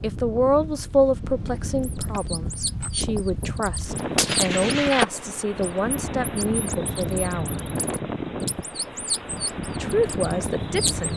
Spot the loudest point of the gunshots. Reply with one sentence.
The volume of the gunshots peaks at 5 seconds.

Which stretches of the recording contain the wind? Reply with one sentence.
The wind can be heard from 0.0 to 11.1 s.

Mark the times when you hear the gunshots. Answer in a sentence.
You can hear the gunshots from 3.1 to 5.0 s.